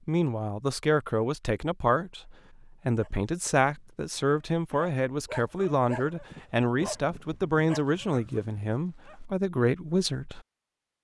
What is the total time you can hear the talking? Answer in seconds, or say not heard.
10 s.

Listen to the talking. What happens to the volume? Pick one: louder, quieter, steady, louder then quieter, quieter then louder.
steady.